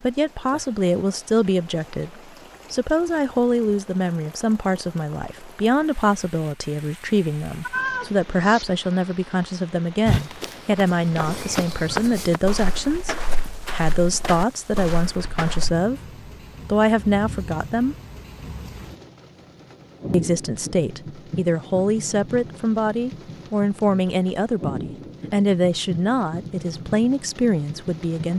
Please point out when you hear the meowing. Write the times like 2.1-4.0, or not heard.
7.6-8.7.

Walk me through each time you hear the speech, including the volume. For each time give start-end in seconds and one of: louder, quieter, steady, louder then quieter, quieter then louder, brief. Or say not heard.
0.0-16.0 steady
16.6-17.9 brief
20.1-28.3 steady.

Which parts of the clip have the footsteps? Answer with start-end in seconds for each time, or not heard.
10.1-15.8.